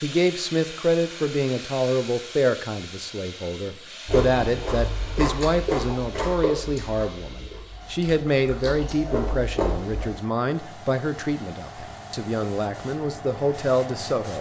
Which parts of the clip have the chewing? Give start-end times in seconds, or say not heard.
4.0-10.1.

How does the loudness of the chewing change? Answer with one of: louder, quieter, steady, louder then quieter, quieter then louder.
quieter then louder.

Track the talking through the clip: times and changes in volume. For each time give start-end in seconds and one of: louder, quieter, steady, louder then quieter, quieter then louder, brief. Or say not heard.
0.0-14.3 steady.